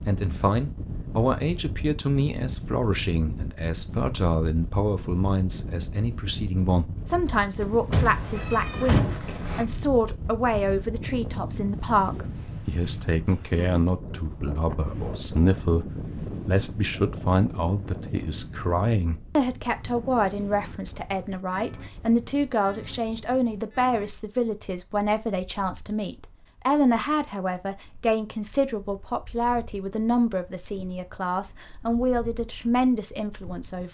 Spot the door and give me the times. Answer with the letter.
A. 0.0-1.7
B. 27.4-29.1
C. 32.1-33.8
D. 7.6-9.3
D.